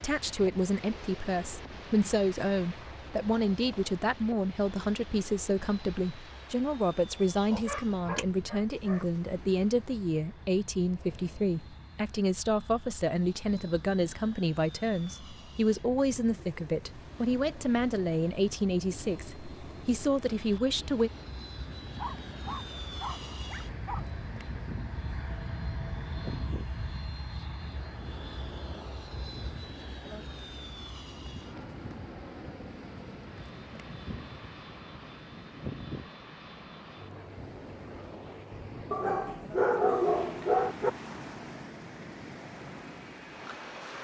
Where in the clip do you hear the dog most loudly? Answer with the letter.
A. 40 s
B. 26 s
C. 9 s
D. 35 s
A.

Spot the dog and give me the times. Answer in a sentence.
The dog can be heard from 7.5 to 9.1 s, from 21.9 to 24.1 s and from 38.9 to 40.9 s.